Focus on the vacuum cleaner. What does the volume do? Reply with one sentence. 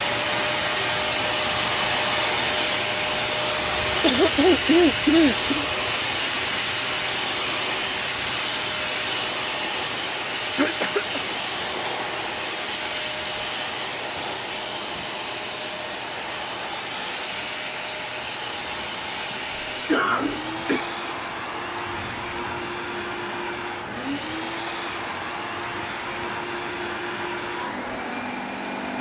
The loudness of the vacuum cleaner goes down.